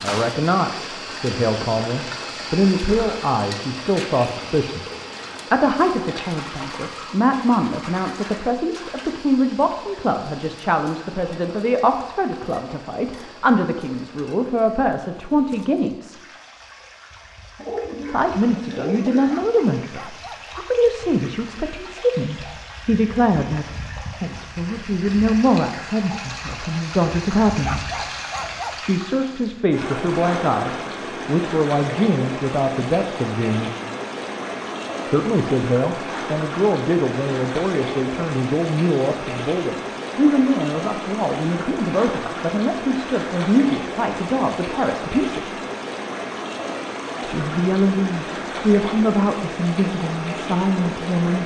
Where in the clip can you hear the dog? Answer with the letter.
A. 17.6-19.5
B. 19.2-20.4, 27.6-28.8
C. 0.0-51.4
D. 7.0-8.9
B.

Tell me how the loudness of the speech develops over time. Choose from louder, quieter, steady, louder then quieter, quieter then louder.
steady.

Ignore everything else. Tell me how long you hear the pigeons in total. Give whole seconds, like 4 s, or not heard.
2 s.